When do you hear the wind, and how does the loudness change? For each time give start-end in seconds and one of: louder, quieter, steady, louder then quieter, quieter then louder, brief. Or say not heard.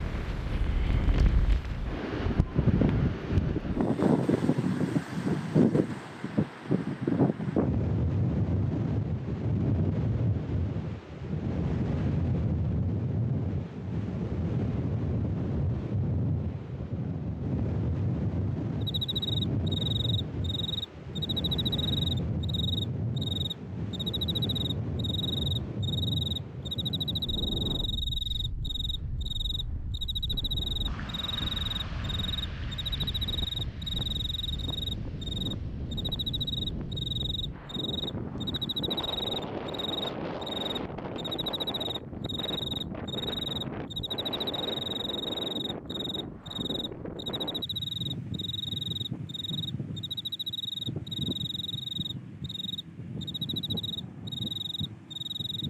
0.0-55.6 quieter.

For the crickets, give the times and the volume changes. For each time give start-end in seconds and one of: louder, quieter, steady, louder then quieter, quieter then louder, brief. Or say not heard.
18.8-55.6 steady.